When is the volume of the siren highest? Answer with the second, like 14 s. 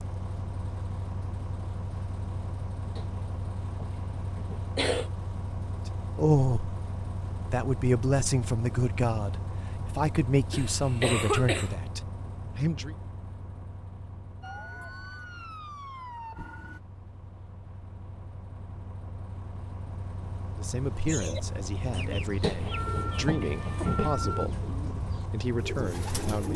24 s.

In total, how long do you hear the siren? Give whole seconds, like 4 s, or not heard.
4 s.